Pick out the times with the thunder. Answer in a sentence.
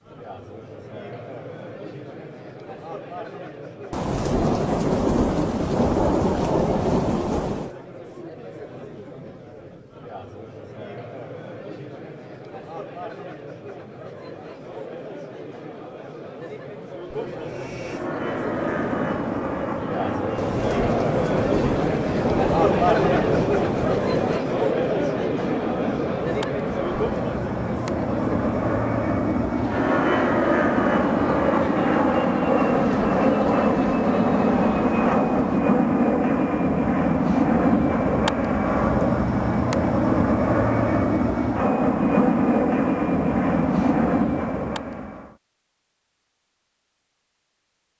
The thunder can be heard from 3.9 to 7.7 s, from 20.4 to 24.4 s and from 32.7 to 35.6 s.